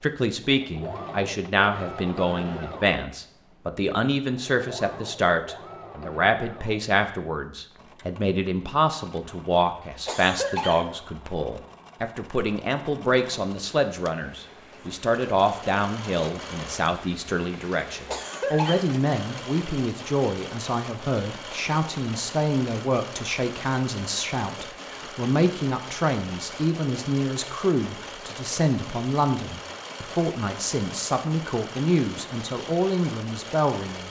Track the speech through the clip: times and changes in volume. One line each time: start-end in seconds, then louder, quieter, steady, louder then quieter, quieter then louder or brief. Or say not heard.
0.0-34.0 steady.